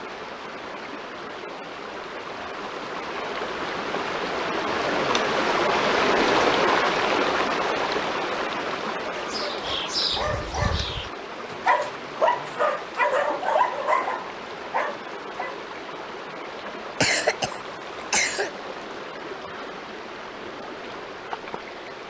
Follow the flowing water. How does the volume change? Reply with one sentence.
The loudness of the flowing water goes up, then down.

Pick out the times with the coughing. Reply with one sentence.
The coughing can be heard from 17.0 to 18.5 s.